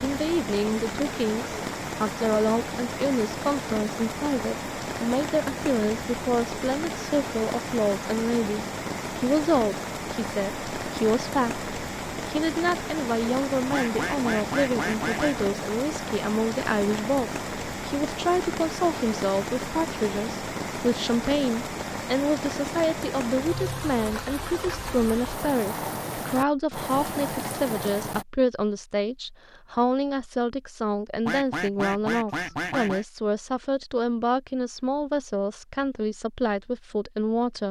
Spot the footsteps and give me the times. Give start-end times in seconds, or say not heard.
not heard.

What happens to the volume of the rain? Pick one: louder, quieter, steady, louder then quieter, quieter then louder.
steady.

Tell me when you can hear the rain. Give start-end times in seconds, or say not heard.
0.0-28.2.